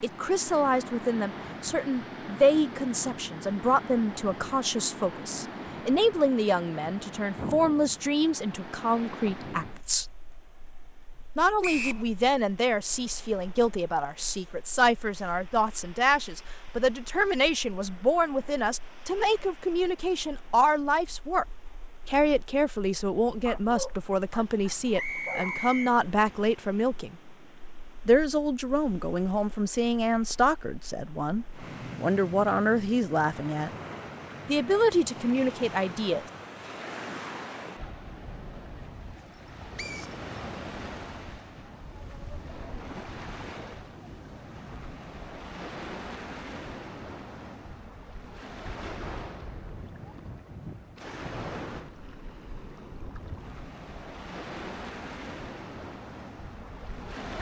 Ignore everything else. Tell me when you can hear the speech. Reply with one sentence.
You can hear the speech from 0.0 to 10.1 s, from 11.3 to 21.4 s, from 22.1 to 27.2 s, from 28.1 to 33.7 s and from 34.5 to 36.2 s.